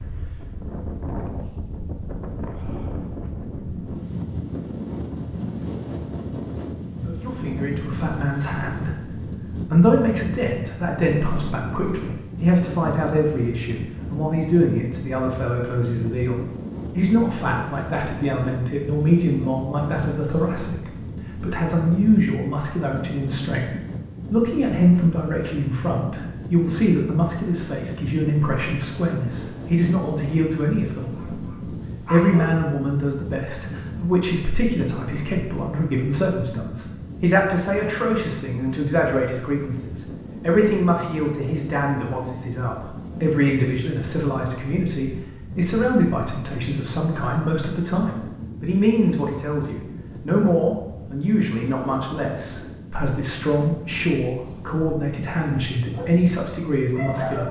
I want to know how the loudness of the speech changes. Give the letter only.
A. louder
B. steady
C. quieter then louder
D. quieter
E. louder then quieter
B.